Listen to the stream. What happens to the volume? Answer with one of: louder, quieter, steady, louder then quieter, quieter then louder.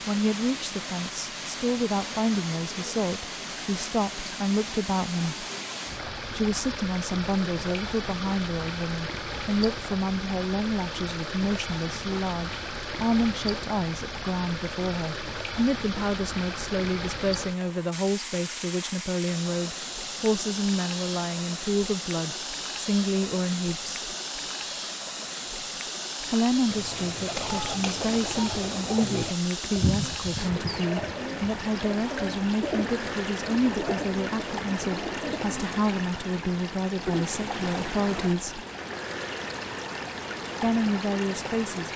steady.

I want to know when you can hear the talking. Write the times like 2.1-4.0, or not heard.
0.1-5.5, 6.3-23.9, 26.2-38.6, 40.6-41.9.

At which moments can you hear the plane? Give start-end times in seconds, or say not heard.
not heard.